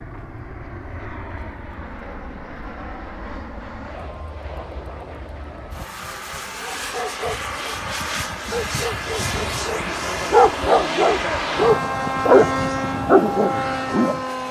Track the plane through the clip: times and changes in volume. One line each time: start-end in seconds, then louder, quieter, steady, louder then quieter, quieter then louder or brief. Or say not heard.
0.0-14.4 louder.